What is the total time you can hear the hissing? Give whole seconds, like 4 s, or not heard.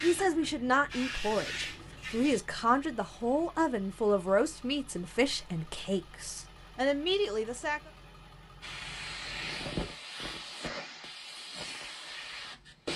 7 s.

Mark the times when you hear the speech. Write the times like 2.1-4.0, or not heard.
0.0-7.9.